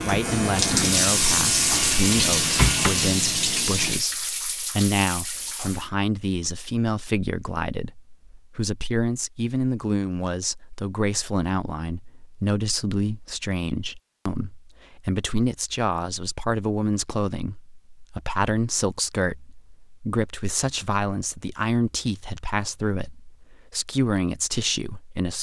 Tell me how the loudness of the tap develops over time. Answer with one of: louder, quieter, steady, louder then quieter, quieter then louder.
quieter.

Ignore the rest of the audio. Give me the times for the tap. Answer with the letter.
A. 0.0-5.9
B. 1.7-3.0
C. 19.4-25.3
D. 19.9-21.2
A.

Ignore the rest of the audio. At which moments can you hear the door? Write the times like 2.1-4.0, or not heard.
1.7-3.0.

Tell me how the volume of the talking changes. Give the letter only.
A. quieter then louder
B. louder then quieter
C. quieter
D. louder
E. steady
E.